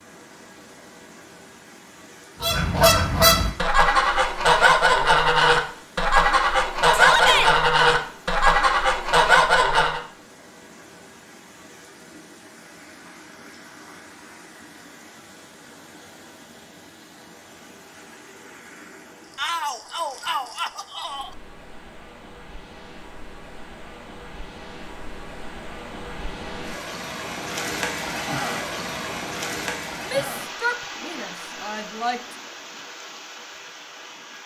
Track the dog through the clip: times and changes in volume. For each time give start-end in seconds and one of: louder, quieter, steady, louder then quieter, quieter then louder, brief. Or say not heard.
not heard.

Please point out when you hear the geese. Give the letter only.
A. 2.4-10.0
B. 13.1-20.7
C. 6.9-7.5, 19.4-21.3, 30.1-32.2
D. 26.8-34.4
A.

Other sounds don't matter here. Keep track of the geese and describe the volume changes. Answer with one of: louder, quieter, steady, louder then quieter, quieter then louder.
steady.